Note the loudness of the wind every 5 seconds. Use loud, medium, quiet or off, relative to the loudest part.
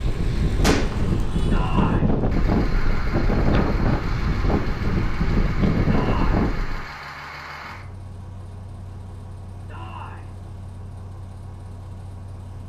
loud, loud, off.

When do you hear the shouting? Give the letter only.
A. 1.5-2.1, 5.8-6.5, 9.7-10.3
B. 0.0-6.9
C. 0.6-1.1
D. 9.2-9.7
A.